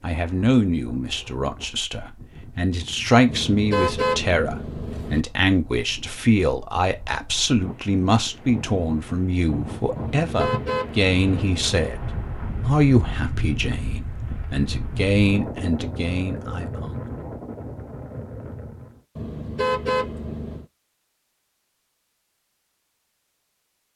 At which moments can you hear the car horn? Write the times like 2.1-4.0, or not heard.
3.2-5.2, 9.9-11.9, 19.1-20.6.